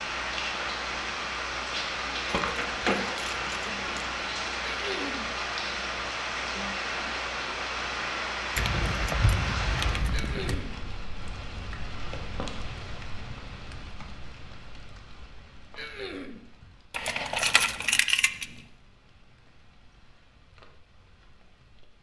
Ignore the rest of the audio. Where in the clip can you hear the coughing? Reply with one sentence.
The coughing can be heard from 4.6 to 5.3 s, from 10.1 to 10.8 s and from 15.8 to 16.4 s.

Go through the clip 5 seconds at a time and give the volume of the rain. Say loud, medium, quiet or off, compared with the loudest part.
loud, loud, medium, quiet, quiet.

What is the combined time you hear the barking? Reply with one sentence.
The barking can't be heard in this clip.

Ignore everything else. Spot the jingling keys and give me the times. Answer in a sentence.
The jingling keys can be heard from 2.2 to 4.2 s, from 8.6 to 10.6 s and from 16.9 to 18.4 s.